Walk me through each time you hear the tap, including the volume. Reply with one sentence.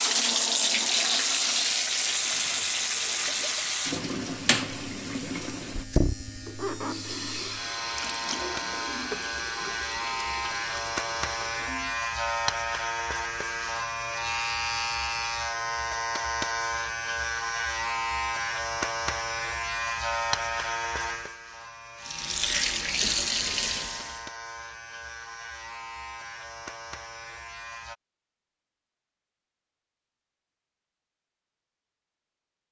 You can hear the tap from 0.0 to 12.0 s, getting quieter; and briefly from 22.0 to 24.2 s.